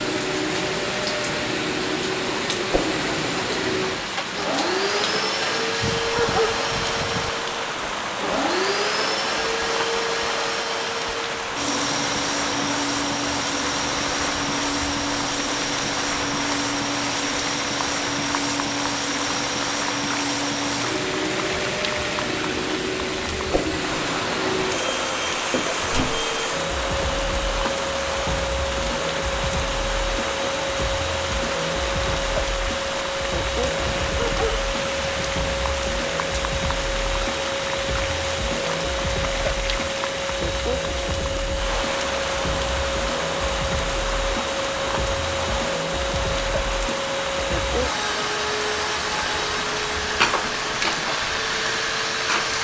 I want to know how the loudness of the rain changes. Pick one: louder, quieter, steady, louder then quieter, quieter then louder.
steady.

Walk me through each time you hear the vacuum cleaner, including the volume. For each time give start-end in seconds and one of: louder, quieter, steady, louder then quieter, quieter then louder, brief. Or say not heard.
0.0-52.6 steady.